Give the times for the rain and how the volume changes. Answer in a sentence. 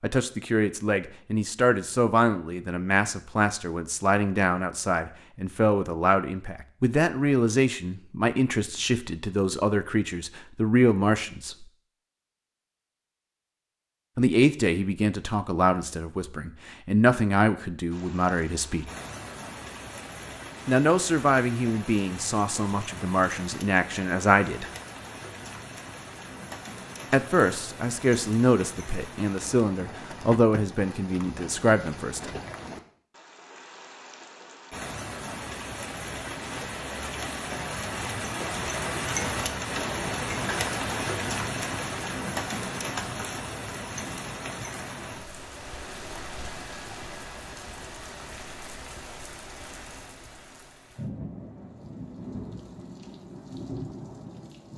The rain can be heard from 17.9 to 54.7 s, getting louder then quieter.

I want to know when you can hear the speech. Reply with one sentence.
The speech can be heard from 0.0 to 11.7 s, from 14.2 to 18.9 s, from 20.6 to 24.7 s and from 27.1 to 32.2 s.